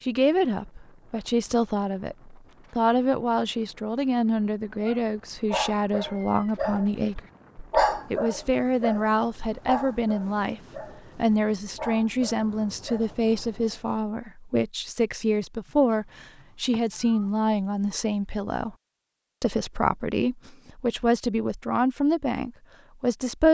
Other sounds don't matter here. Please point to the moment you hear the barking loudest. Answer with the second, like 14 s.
8 s.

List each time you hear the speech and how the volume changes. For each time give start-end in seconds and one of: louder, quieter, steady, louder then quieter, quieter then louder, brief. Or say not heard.
0.0-7.2 steady
8.1-18.8 steady
19.4-23.5 steady.